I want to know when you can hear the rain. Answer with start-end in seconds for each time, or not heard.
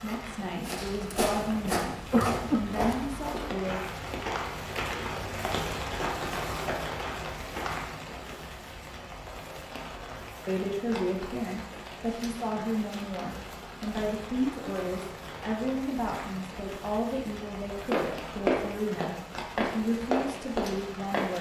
0.0-21.3.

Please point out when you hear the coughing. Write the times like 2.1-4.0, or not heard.
1.6-2.7.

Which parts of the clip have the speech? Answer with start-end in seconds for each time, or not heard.
0.0-3.8, 10.4-21.3.